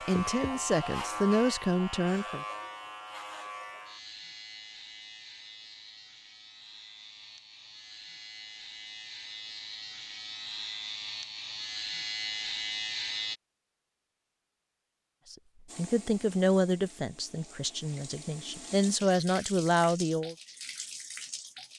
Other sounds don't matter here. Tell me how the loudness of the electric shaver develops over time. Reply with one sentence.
The volume of the electric shaver goes down, then up.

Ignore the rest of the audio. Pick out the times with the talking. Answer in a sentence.
You can hear the talking from 0.1 to 2.5 s and from 15.3 to 20.4 s.